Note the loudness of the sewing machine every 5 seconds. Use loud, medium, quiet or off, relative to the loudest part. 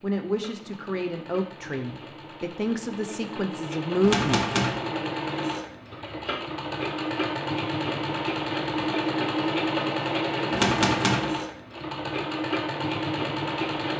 medium, loud, loud.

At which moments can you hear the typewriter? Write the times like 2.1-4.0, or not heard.
4.0-4.8, 10.5-11.3.